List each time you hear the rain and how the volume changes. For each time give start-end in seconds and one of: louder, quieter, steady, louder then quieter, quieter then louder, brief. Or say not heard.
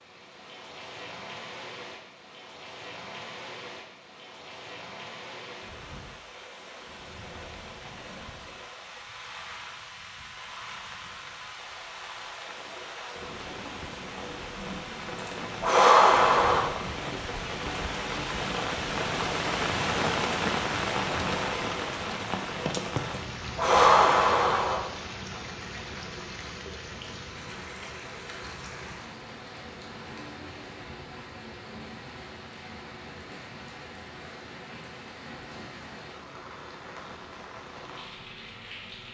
0.0-39.0 louder then quieter.